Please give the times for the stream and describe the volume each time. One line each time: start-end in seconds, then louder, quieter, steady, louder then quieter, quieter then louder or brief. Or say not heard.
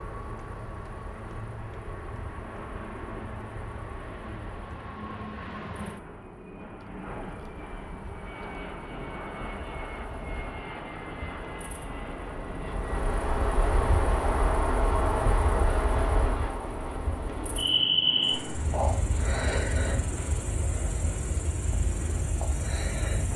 not heard.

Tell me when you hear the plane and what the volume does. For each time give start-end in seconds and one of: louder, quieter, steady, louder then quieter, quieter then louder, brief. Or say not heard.
0.0-23.3 steady.